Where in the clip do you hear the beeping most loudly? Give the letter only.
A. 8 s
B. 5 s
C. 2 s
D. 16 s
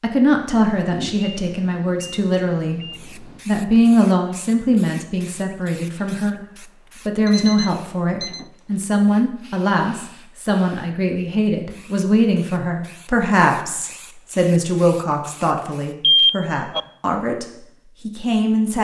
D.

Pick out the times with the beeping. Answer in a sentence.
You can hear the beeping from 0.8 to 3.4 s, from 7.2 to 8.4 s and from 16.0 to 16.8 s.